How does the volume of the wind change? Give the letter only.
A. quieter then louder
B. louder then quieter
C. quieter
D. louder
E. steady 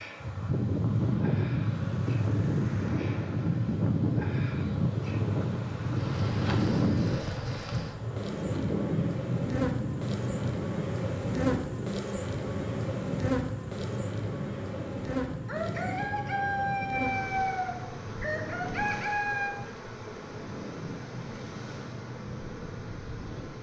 C.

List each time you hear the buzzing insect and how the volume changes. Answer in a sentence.
The buzzing insect can be heard from 0.0 to 23.5 s, getting louder then quieter.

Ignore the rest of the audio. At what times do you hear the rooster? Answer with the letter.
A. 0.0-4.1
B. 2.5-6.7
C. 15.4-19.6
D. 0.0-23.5
C.